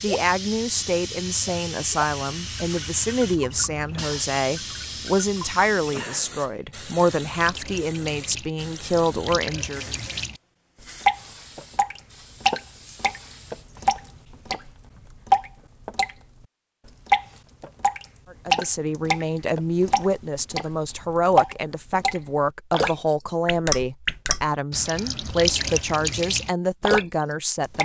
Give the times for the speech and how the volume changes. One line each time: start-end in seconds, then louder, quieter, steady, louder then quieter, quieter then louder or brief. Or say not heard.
0.0-9.8 steady
18.3-27.8 steady.